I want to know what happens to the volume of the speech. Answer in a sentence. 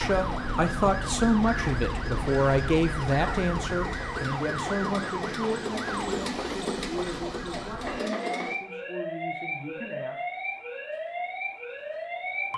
The loudness of the speech goes down.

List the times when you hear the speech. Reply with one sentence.
The speech can be heard from 0.0 to 10.2 s.